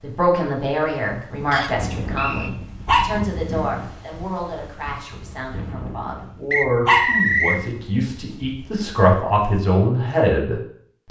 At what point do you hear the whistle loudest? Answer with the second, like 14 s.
7 s.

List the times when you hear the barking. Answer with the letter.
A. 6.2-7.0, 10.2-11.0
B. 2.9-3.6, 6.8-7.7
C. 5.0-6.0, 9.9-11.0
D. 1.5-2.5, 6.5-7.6
B.